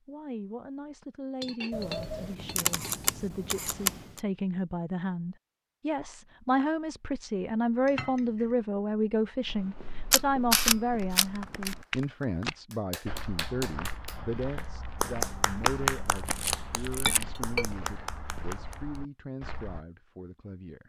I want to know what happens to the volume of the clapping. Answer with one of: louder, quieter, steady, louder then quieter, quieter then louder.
louder then quieter.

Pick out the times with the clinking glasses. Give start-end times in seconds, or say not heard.
1.4-3.1, 7.8-8.6, 16.9-17.6.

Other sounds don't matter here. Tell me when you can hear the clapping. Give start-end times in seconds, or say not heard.
10.9-19.0.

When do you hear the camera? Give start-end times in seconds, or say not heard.
1.7-4.2, 10.1-11.8, 16.1-17.2.